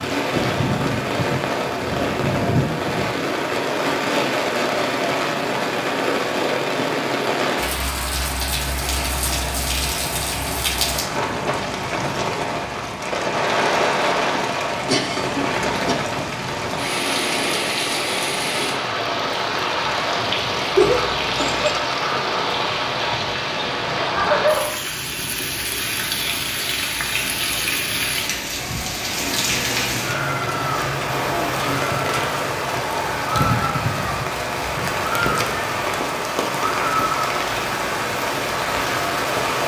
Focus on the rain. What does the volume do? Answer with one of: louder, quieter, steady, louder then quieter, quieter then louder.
steady.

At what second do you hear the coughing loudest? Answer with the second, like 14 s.
21 s.